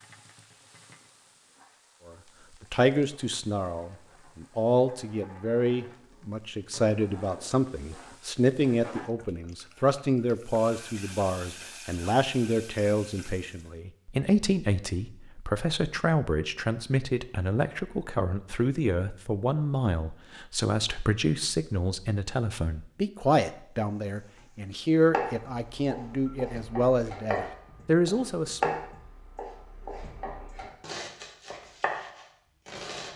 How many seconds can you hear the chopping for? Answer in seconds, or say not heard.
8 s.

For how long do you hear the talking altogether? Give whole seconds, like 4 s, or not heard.
26 s.